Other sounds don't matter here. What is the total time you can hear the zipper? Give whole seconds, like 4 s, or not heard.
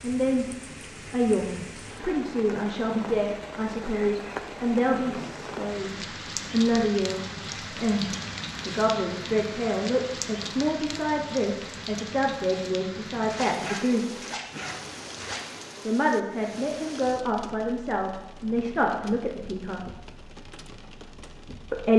2 s.